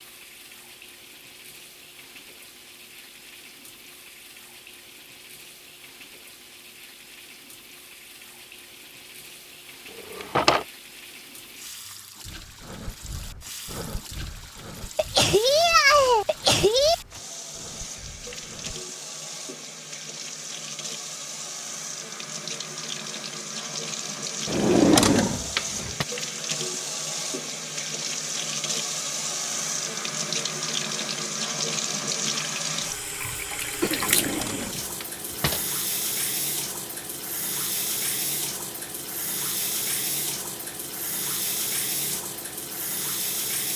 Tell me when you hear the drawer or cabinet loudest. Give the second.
25 s.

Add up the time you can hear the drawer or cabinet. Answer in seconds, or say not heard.
4 s.